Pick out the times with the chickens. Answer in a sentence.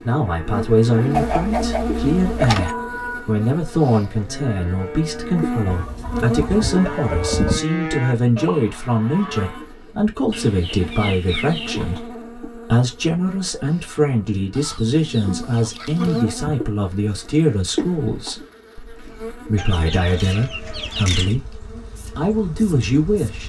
You can hear the chickens from 1.1 to 2.8 s, from 5.7 to 7.6 s, from 10.3 to 12.1 s, from 14.5 to 16.2 s and from 19.6 to 21.4 s.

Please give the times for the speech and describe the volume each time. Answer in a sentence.
The speech can be heard from 0.1 to 23.4 s, at a steady volume.